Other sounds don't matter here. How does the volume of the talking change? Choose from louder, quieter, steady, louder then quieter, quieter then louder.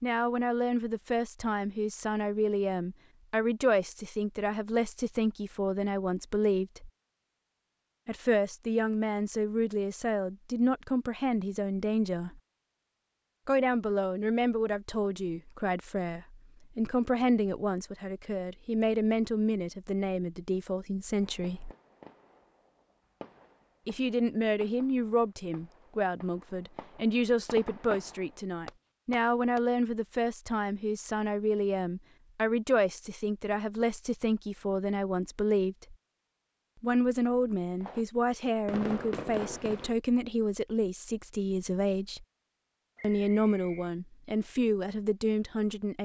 steady.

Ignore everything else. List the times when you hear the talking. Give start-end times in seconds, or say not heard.
0.0-6.9, 8.1-12.4, 13.4-21.7, 23.9-36.0, 36.8-42.2, 43.0-46.0.